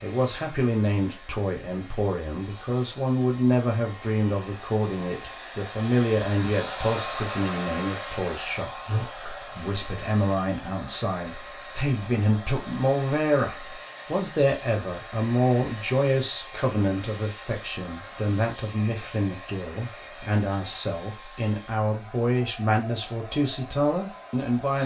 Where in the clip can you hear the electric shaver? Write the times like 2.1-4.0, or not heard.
not heard.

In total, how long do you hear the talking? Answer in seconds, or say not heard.
25 s.